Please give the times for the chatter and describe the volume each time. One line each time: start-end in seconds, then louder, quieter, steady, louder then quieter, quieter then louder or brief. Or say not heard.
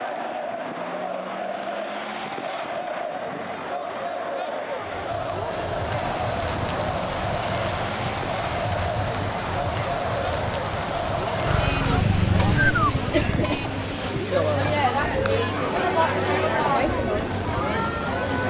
0.0-18.4 louder.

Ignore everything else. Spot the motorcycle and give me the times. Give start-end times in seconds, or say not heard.
11.4-13.9.